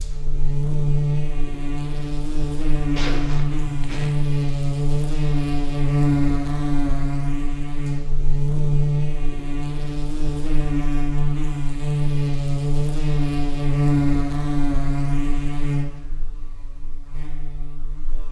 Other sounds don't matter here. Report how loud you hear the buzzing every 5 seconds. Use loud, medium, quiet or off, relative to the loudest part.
loud, loud, loud, medium.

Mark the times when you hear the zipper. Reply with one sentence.
You can hear the zipper from 3.0 to 4.2 s.